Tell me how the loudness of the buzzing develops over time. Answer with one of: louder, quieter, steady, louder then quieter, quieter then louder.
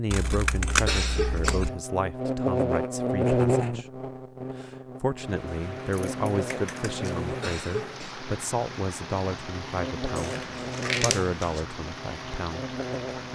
quieter.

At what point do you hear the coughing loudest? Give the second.
1 s.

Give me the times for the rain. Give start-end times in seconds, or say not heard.
5.2-13.3.